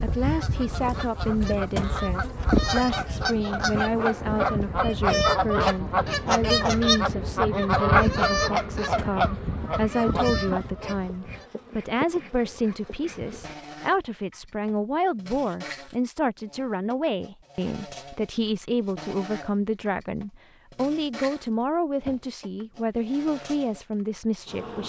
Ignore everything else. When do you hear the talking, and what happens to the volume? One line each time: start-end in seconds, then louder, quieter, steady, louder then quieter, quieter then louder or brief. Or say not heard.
0.0-24.8 steady.